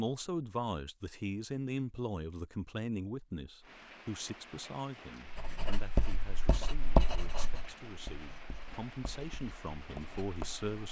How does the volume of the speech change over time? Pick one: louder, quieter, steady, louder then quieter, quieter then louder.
quieter then louder.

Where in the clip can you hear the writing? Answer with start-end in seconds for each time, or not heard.
5.2-10.7.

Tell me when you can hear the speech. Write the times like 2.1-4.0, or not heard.
0.0-10.8.